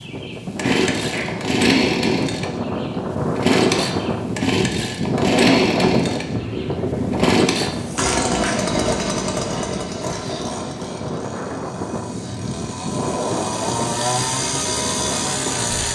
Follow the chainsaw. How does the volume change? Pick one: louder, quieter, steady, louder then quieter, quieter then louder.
quieter then louder.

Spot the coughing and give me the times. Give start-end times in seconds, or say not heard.
0.6-1.4.